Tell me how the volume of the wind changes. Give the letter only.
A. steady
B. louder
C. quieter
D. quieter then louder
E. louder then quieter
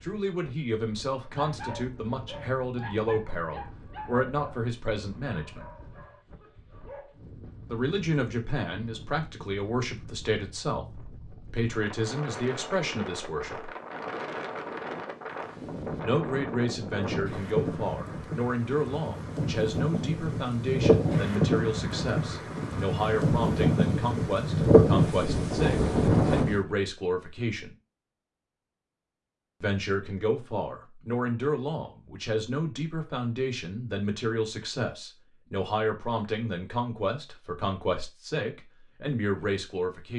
B.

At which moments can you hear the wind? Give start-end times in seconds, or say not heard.
0.0-26.6.